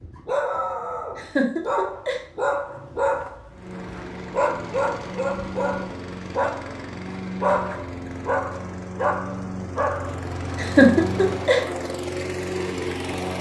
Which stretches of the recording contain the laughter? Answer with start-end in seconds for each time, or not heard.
1.1-2.2, 10.6-11.6.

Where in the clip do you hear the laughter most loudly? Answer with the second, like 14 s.
11 s.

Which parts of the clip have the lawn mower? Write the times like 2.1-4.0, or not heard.
3.5-13.3.